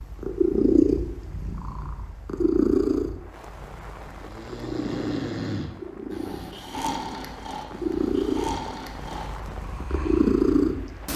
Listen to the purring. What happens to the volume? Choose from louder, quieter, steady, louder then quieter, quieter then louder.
quieter then louder.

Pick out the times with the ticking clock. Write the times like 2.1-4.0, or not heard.
not heard.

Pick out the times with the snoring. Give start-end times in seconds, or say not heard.
4.1-10.5.